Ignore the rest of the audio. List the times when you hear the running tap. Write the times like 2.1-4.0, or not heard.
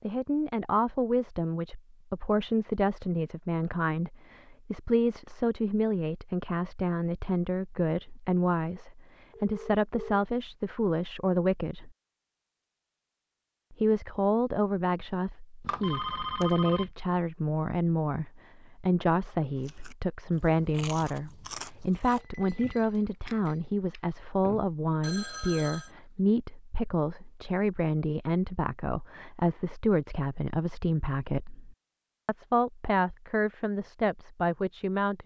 not heard.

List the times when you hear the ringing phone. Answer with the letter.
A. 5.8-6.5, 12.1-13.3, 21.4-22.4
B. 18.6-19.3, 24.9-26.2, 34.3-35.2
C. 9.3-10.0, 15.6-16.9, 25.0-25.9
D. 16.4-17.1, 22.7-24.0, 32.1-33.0
C.